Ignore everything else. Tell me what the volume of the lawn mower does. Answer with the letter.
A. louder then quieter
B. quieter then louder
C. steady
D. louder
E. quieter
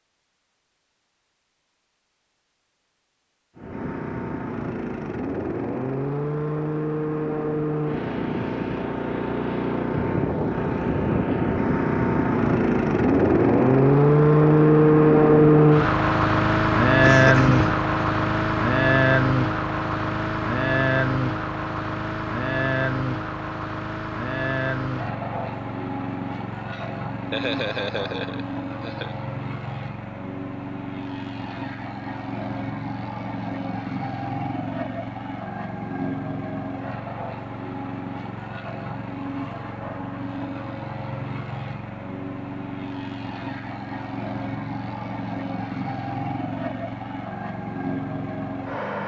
A.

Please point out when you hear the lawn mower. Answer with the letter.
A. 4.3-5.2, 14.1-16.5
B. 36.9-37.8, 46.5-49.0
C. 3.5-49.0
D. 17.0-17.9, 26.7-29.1
C.